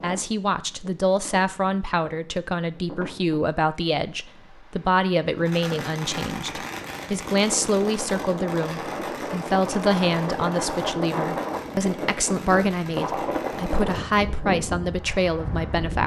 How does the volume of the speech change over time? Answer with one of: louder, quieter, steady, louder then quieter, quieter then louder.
steady.